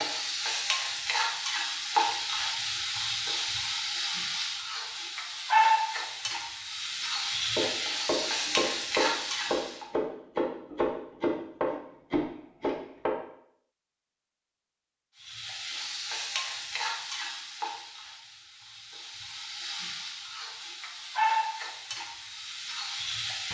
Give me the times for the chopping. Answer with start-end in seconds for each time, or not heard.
7.1-13.2.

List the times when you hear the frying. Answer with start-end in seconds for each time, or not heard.
0.0-9.8, 15.2-23.4.